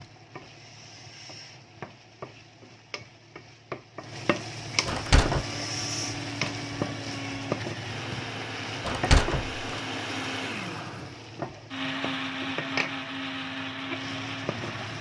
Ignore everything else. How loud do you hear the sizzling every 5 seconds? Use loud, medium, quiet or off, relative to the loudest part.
medium, loud, medium.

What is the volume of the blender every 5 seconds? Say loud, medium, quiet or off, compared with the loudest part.
off, loud, loud.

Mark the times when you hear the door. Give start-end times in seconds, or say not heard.
4.8-5.5, 8.8-9.6.